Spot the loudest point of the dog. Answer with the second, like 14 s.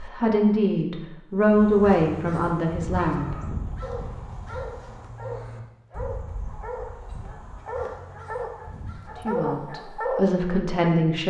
10 s.